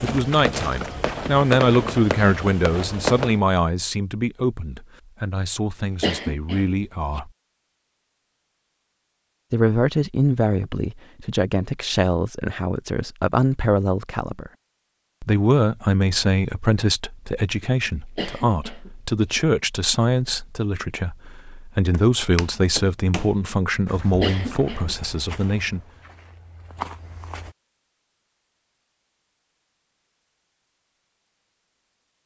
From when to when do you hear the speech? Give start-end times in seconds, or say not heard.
0.0-7.3, 9.5-14.5, 15.2-25.9.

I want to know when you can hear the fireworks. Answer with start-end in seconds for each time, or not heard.
0.0-3.4.